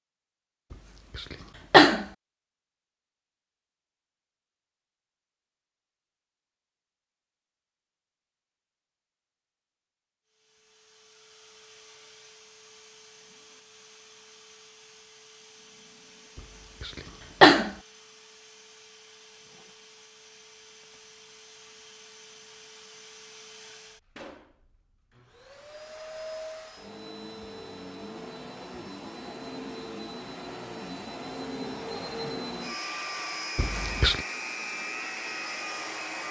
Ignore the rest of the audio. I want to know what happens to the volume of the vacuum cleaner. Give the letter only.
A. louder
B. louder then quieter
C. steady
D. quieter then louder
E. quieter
A.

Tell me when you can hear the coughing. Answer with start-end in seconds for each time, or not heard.
1.1-2.0, 16.8-17.7, 33.5-34.2.